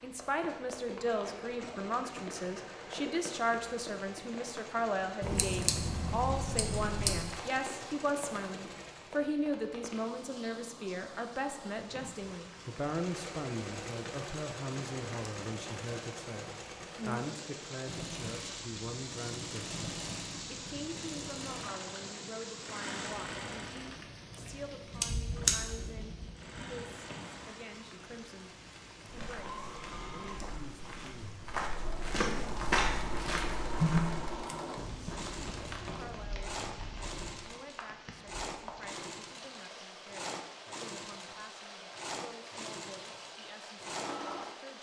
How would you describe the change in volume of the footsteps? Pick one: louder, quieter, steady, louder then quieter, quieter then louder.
louder then quieter.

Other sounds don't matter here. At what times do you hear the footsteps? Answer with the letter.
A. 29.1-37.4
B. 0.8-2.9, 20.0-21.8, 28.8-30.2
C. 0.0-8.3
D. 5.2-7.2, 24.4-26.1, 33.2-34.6
A.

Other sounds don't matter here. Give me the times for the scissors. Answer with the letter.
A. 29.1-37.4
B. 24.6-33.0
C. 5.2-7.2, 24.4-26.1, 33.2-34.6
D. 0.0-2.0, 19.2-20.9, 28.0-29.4
C.